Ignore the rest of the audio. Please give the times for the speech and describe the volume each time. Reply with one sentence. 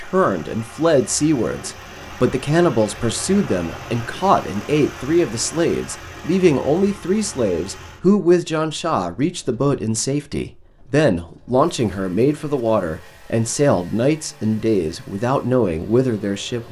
The speech can be heard from 0.0 to 16.6 s, at a steady volume.